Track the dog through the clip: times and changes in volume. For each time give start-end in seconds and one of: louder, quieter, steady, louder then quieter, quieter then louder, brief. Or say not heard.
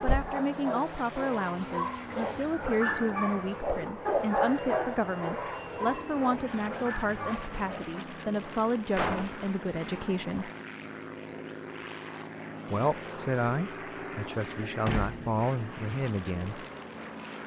0.0-8.0 louder then quieter.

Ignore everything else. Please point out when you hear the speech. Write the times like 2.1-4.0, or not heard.
0.0-10.5, 12.7-16.6.